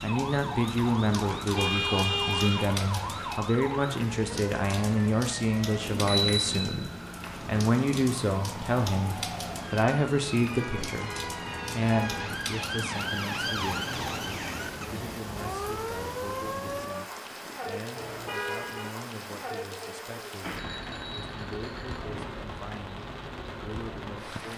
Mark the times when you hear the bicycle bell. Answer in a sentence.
You can hear the bicycle bell from 5.8 to 7.5 s and from 20.4 to 22.4 s.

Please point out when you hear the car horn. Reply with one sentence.
The car horn can be heard from 1.6 to 2.7 s, from 10.4 to 12.4 s and from 17.9 to 18.9 s.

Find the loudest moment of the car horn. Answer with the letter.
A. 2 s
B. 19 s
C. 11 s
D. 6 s
A.